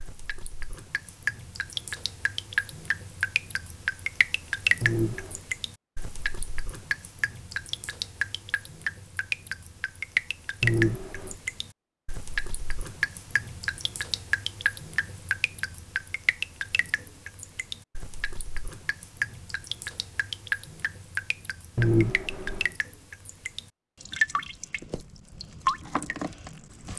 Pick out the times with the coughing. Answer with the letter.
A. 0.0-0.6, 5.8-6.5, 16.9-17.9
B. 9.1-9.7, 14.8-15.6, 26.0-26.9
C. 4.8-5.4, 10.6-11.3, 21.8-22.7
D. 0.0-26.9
C.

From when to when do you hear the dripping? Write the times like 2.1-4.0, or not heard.
0.0-26.9.